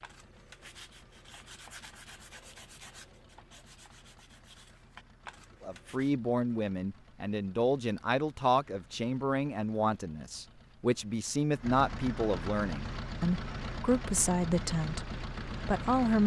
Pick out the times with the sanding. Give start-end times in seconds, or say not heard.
0.0-6.1.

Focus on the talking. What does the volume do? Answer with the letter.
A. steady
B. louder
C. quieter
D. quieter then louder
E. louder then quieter
A.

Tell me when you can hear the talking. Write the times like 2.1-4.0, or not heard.
5.6-16.2.